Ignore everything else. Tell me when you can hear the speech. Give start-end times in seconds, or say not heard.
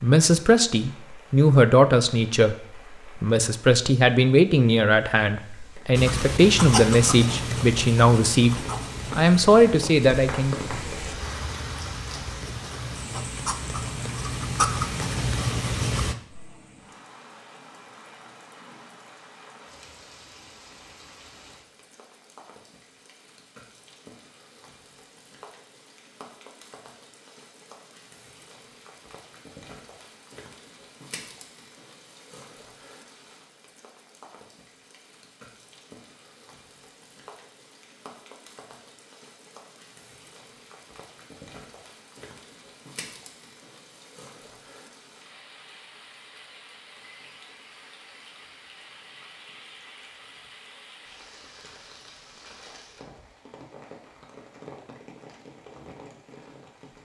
0.0-10.6.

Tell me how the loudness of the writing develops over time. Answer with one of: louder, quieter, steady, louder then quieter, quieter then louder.
quieter then louder.